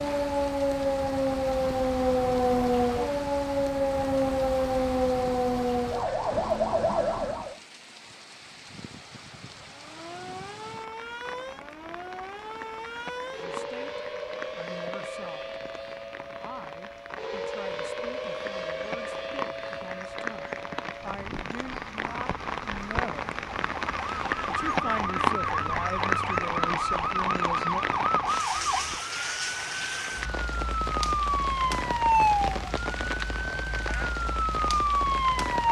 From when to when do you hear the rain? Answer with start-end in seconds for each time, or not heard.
0.0-35.6.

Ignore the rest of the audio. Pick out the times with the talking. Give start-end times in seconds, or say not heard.
13.3-15.6, 16.4-23.3, 24.4-27.9.